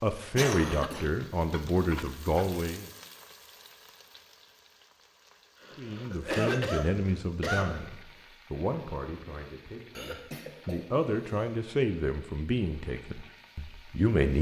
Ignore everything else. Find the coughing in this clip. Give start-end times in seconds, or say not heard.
0.3-1.1, 5.6-7.8, 9.9-11.5.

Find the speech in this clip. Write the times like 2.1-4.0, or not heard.
0.0-2.9, 5.8-14.3.